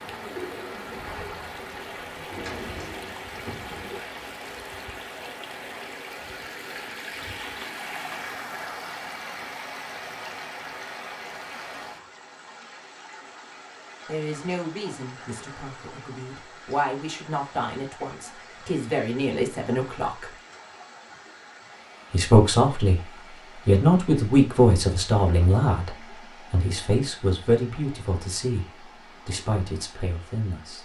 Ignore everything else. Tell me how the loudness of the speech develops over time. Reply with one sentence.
The volume of the speech goes up, then down.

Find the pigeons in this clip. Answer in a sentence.
You can hear the pigeons from 0.0 to 4.0 s.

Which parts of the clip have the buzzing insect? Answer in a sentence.
You can't hear the buzzing insect here.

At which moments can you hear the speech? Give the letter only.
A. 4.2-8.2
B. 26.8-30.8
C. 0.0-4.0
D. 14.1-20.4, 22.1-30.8
D.